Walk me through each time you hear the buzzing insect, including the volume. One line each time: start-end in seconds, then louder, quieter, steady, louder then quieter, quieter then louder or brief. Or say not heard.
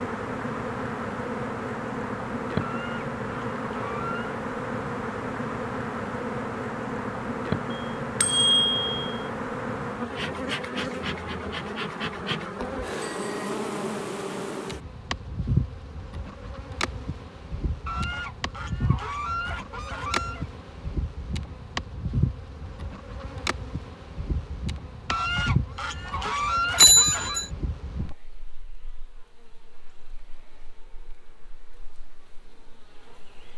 0.0-33.5 quieter.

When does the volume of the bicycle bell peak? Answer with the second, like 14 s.
27 s.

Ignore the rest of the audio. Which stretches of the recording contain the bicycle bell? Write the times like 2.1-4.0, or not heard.
7.7-9.2, 13.0-13.6, 26.8-27.4.